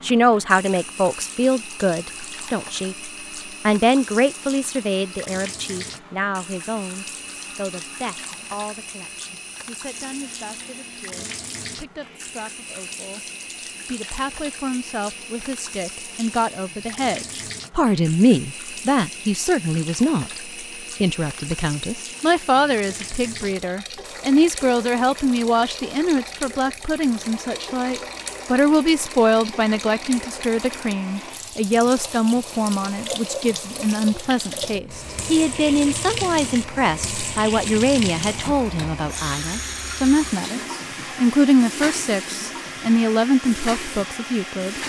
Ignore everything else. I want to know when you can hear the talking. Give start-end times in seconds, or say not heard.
0.0-20.4, 21.0-44.8.